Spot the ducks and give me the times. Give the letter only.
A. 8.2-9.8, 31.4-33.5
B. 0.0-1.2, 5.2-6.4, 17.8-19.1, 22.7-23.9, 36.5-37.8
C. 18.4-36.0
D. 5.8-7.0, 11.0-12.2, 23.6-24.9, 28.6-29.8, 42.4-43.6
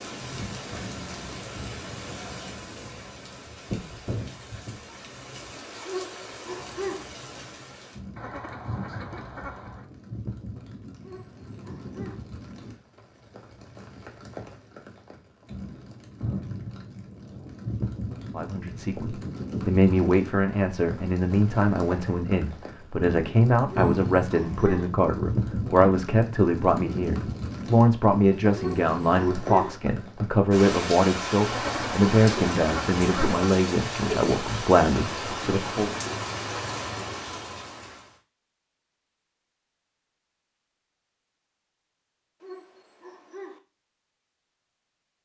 A.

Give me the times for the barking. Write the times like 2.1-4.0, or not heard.
5.8-7.0, 11.0-12.2, 23.6-24.9, 28.6-29.8, 42.4-43.6.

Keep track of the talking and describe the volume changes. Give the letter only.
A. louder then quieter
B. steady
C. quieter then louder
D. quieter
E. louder
B.